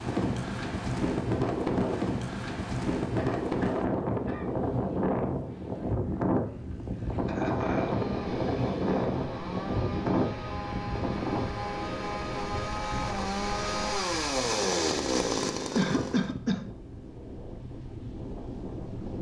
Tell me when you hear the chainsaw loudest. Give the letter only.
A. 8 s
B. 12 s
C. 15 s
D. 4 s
C.